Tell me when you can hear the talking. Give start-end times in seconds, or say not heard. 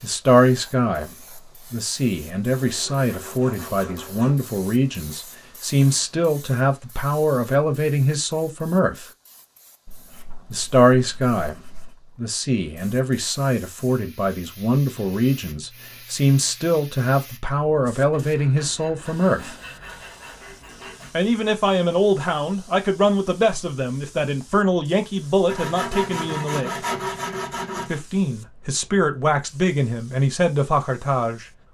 0.0-9.1, 10.5-19.6, 21.1-26.8, 27.9-31.4.